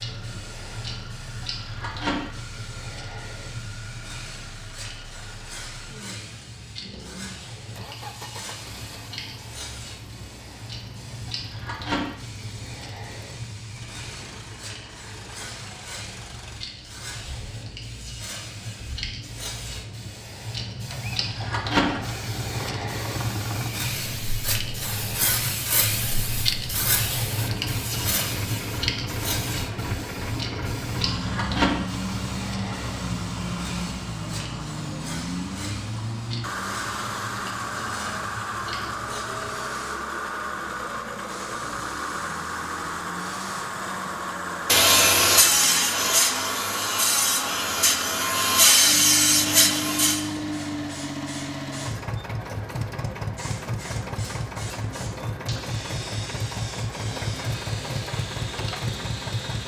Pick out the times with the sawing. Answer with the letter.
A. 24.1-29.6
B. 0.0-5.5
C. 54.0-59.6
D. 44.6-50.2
D.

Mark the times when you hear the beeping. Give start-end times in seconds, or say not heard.
not heard.